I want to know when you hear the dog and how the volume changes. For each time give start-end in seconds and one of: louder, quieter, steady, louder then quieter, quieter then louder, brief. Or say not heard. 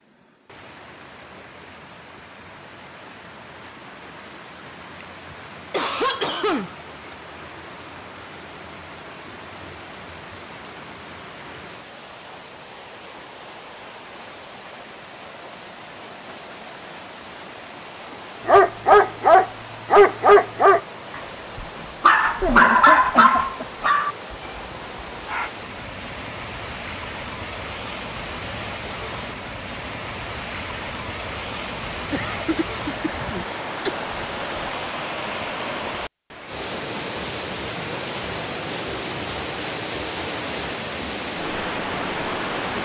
18.4-25.5 quieter.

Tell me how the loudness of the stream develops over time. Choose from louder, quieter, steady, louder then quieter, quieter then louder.
louder.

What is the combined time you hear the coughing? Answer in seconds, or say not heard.
5 s.